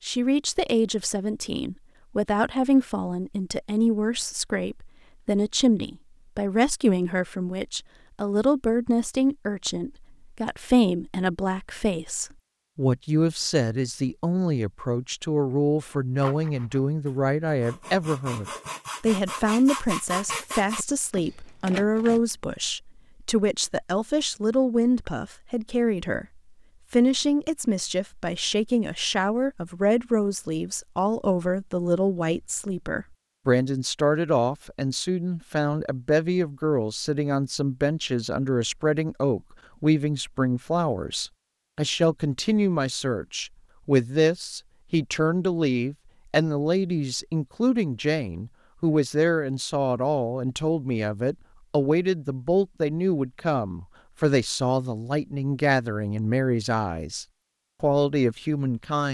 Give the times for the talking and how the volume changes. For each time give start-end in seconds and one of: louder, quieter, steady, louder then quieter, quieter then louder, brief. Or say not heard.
0.0-59.0 steady.